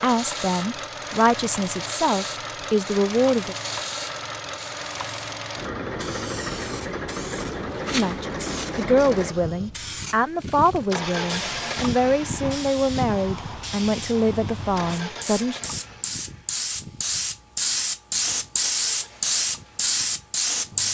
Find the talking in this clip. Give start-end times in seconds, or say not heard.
0.0-3.5, 7.9-15.6.